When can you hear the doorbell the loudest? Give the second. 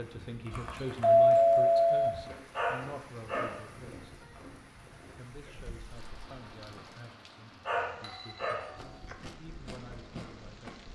1 s.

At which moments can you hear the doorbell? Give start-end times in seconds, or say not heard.
0.5-2.1, 8.0-8.9.